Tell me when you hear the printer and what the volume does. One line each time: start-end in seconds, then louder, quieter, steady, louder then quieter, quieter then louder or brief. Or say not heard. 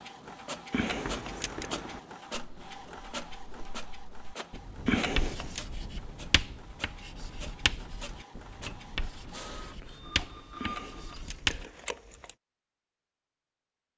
0.0-11.4 quieter then louder.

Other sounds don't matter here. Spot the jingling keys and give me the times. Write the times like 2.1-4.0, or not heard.
0.7-1.7, 4.8-5.6, 10.6-12.3.